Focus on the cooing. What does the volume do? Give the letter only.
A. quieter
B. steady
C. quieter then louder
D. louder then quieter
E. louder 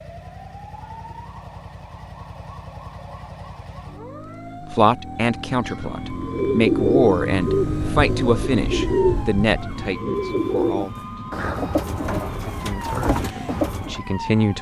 A.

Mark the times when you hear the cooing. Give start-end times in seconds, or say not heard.
6.1-14.0.